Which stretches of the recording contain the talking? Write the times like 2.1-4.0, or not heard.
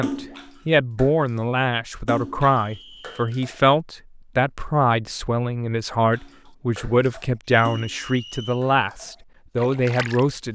0.0-10.4.